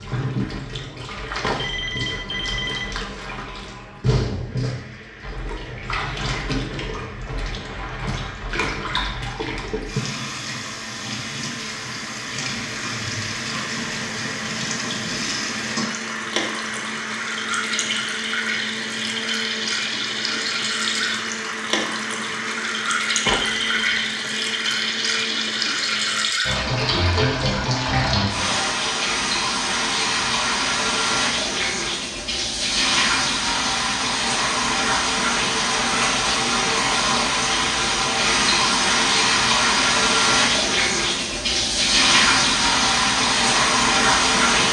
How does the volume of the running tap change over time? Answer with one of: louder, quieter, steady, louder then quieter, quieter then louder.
louder.